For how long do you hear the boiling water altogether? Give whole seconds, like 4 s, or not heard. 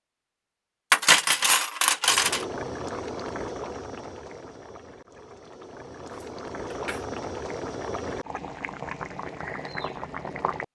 9 s.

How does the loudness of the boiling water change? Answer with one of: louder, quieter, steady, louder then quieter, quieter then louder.
quieter then louder.